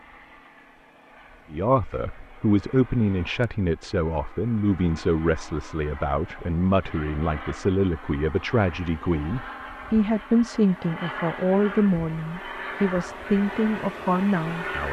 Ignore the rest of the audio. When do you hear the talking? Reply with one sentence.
You can hear the talking from 1.5 to 14.8 s.